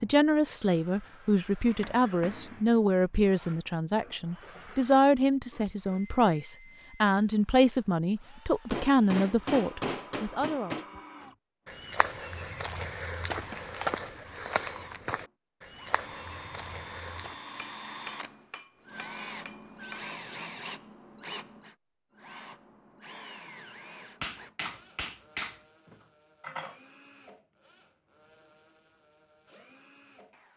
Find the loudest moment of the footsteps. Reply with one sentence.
The volume of the footsteps peaks at 14 seconds.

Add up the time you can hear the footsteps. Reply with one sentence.
The footsteps can be heard for 6 seconds in total.